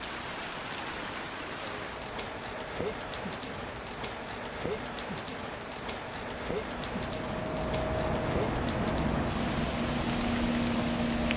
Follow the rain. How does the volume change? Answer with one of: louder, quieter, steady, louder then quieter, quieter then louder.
steady.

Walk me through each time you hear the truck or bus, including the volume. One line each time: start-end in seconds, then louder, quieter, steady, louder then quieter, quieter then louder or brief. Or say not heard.
0.0-11.3 louder.